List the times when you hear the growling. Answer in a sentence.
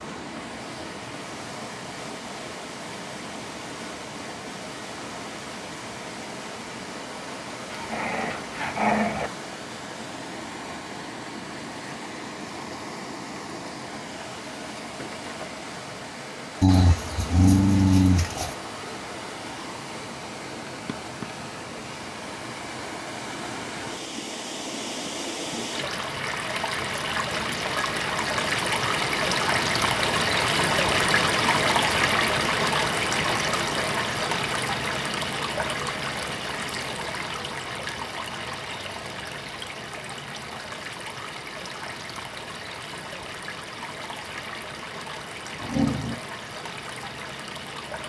The growling can be heard from 7.7 to 9.3 s, from 16.6 to 18.6 s and from 45.6 to 46.2 s.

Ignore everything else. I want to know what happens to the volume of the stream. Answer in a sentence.
The volume of the stream goes up, then down.